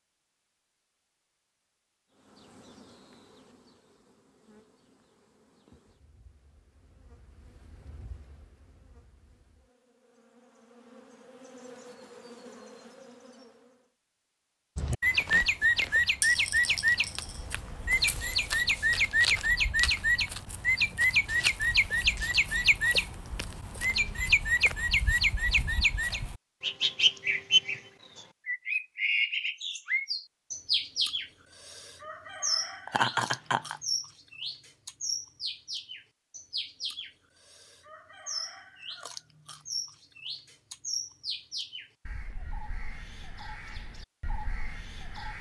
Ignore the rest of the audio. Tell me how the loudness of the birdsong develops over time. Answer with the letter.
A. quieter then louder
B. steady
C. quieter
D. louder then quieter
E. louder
C.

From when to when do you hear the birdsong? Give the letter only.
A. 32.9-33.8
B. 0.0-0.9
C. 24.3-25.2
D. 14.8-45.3
D.